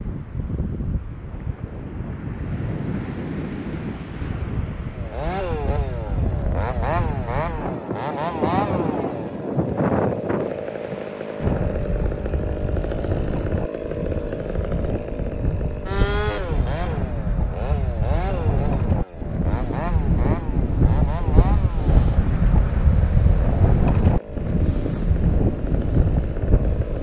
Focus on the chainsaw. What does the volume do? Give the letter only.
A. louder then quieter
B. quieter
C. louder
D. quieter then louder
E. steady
B.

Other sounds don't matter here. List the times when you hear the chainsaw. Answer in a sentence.
The chainsaw can be heard from 4.9 to 26.9 s.